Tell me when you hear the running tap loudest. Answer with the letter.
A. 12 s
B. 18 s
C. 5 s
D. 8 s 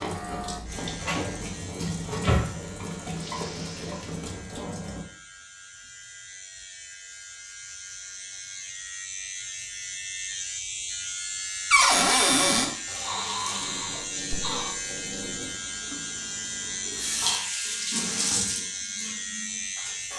B.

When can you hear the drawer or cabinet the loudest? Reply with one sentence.
The loudest moment of the drawer or cabinet is at 12 seconds.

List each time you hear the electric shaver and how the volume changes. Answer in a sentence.
You can hear the electric shaver from 0.0 to 20.1 s, getting louder.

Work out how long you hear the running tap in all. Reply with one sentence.
You can hear the running tap for 12 seconds altogether.